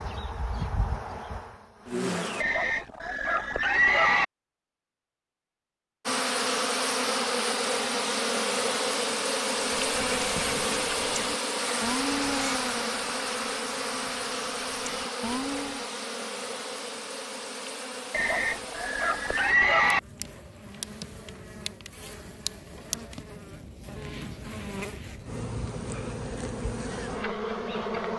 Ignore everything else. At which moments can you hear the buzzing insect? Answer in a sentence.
You can hear the buzzing insect from 0.0 to 2.5 s and from 6.0 to 28.1 s.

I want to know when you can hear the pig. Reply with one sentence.
The pig can be heard from 2.4 to 4.2 s and from 18.1 to 20.0 s.